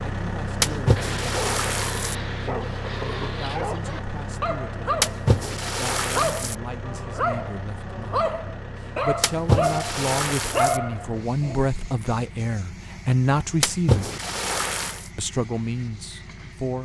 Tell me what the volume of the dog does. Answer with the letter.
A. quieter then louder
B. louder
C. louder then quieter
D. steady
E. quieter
B.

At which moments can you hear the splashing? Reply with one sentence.
The splashing can be heard from 0.6 to 2.1 s, from 5.0 to 6.5 s, from 9.2 to 10.8 s and from 13.6 to 15.1 s.